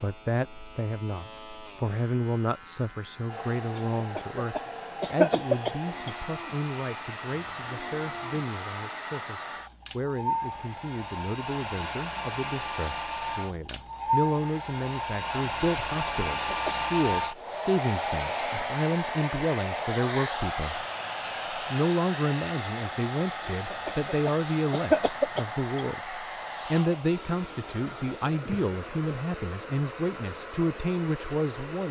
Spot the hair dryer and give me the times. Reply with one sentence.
The hair dryer can be heard from 3.2 to 31.8 s.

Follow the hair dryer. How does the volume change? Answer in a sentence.
The loudness of the hair dryer goes up, then down.